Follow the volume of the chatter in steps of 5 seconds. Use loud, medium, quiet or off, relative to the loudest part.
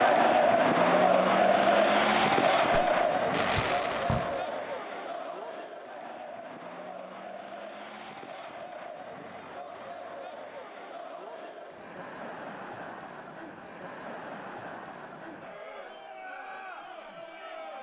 loud, quiet, quiet, quiet.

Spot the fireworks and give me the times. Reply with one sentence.
The fireworks can be heard from 2.0 to 4.5 s.